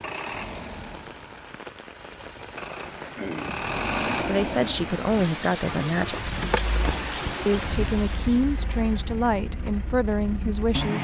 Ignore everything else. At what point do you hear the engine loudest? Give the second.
4 s.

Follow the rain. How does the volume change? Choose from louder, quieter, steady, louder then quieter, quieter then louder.
louder.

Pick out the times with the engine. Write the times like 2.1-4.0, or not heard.
0.0-10.9.